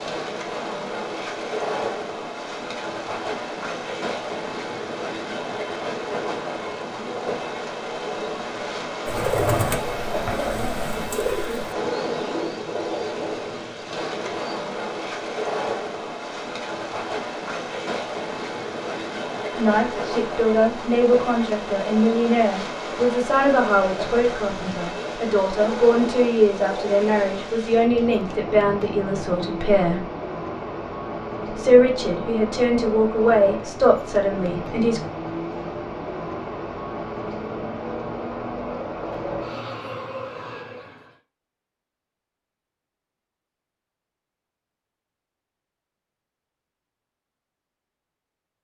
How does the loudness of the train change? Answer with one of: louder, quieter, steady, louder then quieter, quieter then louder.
steady.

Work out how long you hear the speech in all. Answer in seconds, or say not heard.
14 s.